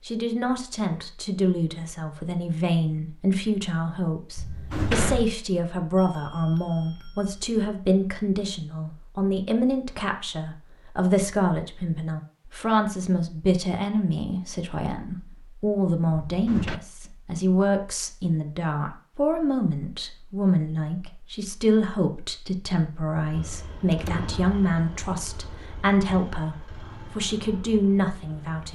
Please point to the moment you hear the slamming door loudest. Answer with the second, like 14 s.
5 s.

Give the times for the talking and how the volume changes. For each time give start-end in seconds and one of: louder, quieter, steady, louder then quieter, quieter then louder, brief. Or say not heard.
0.0-28.6 steady.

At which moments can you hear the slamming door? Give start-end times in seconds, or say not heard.
4.3-5.3, 16.2-16.8, 23.9-24.3.